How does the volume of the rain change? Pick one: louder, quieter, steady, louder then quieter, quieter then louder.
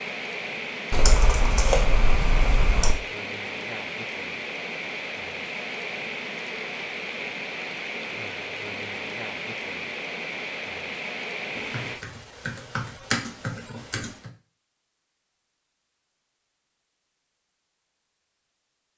steady.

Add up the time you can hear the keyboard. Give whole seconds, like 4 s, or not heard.
5 s.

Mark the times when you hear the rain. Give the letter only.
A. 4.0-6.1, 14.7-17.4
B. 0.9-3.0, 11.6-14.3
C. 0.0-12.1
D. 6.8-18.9
C.